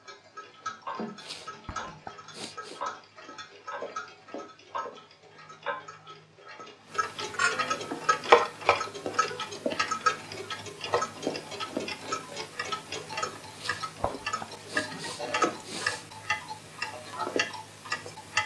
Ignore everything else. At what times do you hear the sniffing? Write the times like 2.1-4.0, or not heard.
1.1-2.8, 13.5-16.1.